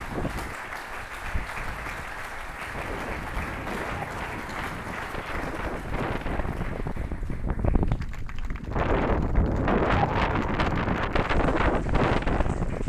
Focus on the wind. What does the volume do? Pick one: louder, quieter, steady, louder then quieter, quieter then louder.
louder.